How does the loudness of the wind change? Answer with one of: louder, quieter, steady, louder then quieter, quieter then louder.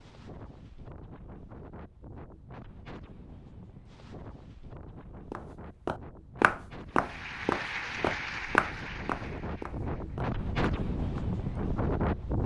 louder.